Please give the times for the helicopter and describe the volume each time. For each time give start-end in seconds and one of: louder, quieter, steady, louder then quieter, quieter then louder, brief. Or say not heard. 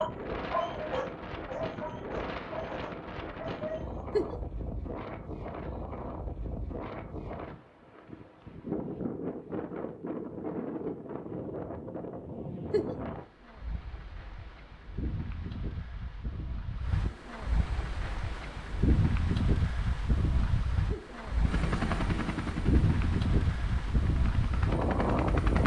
21.4-25.6 quieter then louder.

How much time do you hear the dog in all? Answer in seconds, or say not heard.
4 s.